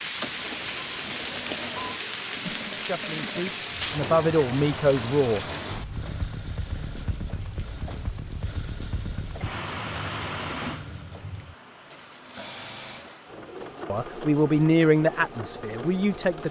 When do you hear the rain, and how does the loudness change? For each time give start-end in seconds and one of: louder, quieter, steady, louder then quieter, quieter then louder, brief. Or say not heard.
0.0-16.4 quieter.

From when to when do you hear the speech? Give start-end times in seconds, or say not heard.
2.5-5.4, 13.9-16.4.